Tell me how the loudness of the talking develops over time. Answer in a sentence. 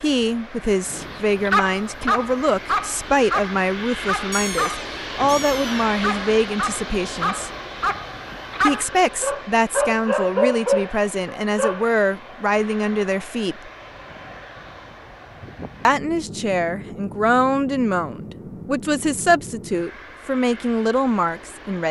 The loudness of the talking stays about the same.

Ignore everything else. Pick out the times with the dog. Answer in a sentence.
The dog can be heard from 0.9 to 11.8 s.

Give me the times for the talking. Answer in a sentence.
You can hear the talking from 0.0 to 7.5 s, from 8.6 to 13.7 s and from 15.8 to 21.8 s.